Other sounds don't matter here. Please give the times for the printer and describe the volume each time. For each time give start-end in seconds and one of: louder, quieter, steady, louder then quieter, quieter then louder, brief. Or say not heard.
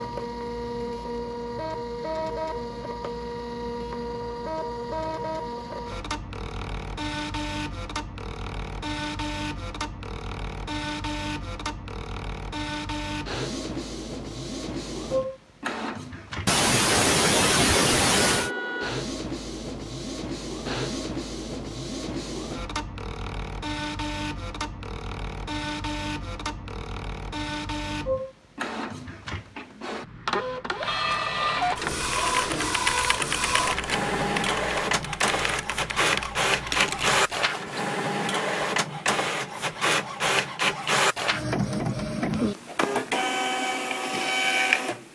0.0-45.1 louder.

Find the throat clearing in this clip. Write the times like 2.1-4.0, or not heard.
16.4-18.5.